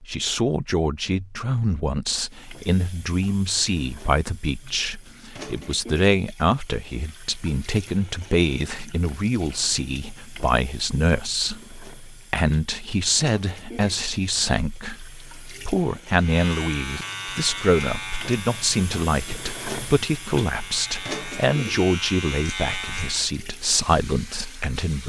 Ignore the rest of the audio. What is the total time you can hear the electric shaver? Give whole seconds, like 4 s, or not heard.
7 s.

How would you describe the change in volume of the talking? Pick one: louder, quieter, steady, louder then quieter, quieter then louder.
steady.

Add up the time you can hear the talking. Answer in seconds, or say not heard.
25 s.